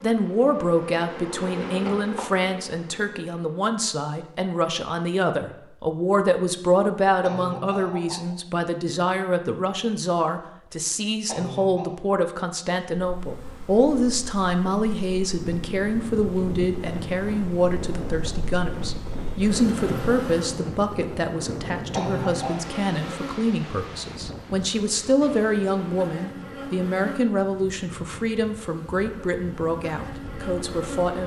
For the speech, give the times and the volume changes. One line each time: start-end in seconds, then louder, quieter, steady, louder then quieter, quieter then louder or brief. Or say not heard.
0.0-31.2 steady.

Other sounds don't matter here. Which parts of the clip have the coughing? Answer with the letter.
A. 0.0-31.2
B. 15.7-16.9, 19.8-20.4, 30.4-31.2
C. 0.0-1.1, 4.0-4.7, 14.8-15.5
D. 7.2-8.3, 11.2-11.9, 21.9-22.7
D.